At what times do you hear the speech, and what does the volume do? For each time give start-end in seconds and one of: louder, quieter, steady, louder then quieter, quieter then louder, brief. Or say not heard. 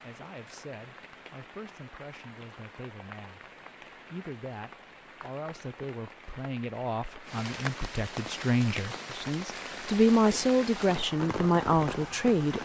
0.0-12.6 louder.